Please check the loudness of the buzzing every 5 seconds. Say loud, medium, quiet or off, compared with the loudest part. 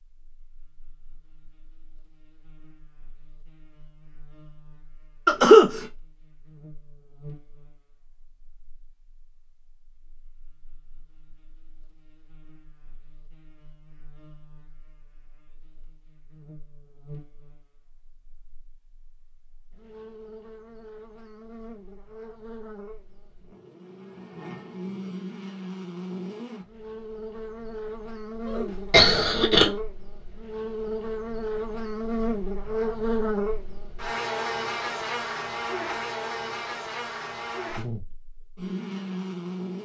quiet, quiet, quiet, quiet, quiet, medium, loud, loud.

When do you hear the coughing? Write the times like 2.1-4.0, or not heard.
5.2-5.8, 28.4-29.7.